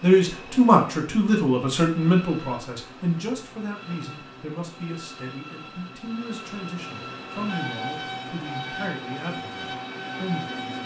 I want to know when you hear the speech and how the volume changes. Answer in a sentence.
You can hear the speech from 0.0 to 10.8 s, getting quieter.